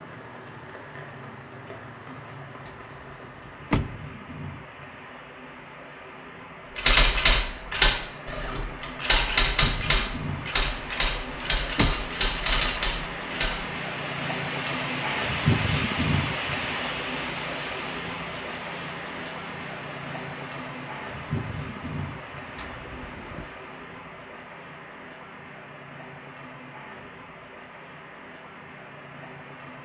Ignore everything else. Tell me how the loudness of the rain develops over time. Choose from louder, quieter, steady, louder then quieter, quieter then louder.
louder then quieter.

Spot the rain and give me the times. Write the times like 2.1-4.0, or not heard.
0.0-29.7.